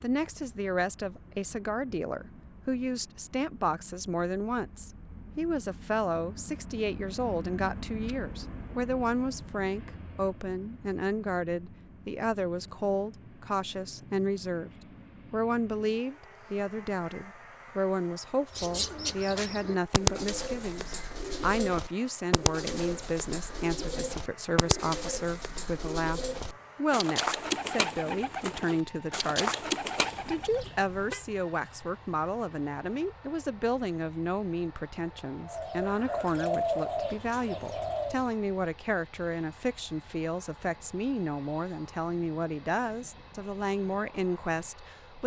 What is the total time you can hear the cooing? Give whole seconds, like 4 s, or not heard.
15 s.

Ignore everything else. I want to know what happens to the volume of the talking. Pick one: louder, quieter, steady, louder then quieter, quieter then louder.
steady.